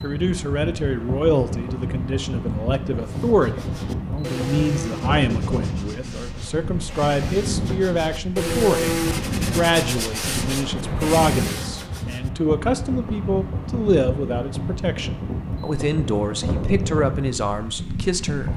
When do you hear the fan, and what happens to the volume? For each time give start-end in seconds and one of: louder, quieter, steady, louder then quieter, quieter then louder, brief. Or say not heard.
0.0-18.5 steady.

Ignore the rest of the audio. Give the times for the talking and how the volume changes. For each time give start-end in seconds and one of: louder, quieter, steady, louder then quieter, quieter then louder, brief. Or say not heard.
0.0-18.5 steady.